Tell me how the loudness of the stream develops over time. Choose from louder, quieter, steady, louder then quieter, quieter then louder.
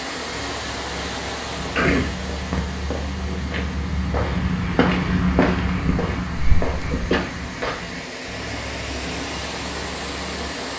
quieter then louder.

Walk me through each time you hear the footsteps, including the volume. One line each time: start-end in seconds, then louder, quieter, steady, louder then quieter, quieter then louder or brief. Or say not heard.
0.2-10.5 louder then quieter.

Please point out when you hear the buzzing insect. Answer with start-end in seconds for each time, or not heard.
not heard.